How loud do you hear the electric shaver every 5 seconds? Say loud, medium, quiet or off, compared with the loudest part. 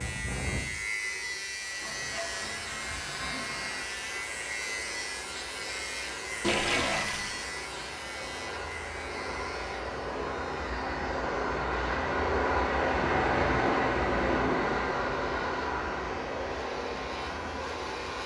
loud, loud, quiet, medium.